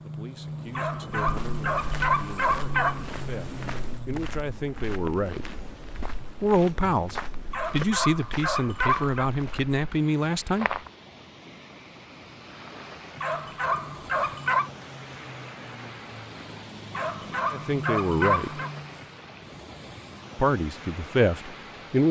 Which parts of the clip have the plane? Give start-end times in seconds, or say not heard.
0.0-4.5, 13.2-19.3.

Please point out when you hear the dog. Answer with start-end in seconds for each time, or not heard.
0.8-3.0, 7.5-9.3, 13.2-14.7, 16.9-18.7.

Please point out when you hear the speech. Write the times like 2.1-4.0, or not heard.
0.0-5.5, 6.3-10.8, 17.5-18.6, 20.4-22.0.